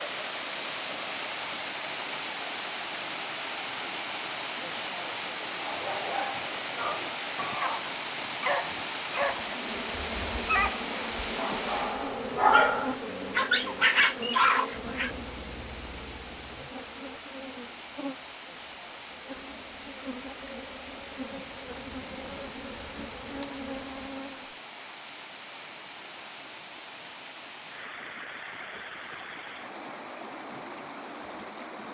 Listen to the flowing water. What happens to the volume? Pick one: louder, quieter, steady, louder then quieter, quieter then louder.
quieter.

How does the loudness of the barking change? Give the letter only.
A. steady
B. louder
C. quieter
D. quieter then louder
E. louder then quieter
B.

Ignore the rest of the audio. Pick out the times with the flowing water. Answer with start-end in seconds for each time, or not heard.
0.0-31.8.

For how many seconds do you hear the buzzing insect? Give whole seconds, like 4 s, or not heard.
15 s.